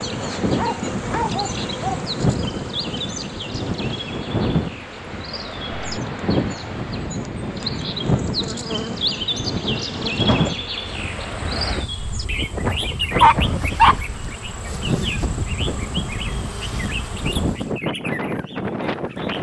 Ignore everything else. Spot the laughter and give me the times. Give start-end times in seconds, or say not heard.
not heard.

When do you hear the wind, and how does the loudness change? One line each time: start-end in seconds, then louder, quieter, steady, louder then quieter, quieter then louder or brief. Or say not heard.
0.0-19.3 steady.